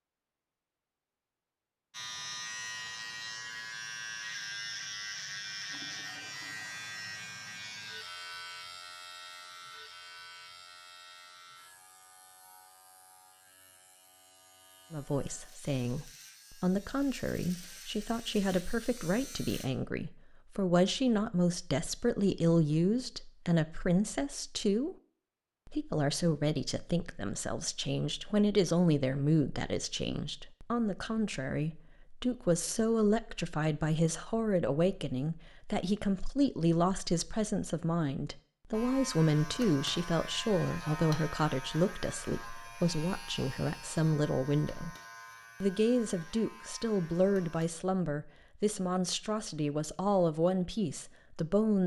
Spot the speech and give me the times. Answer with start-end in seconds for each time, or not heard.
14.9-24.9, 25.6-45.0, 45.6-51.8.